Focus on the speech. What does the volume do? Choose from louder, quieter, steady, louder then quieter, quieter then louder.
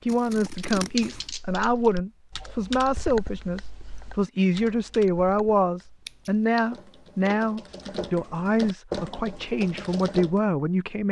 steady.